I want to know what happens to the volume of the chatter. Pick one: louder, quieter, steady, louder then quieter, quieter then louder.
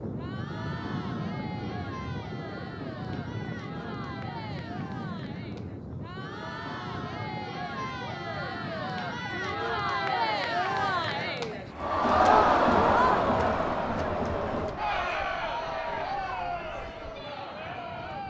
louder then quieter.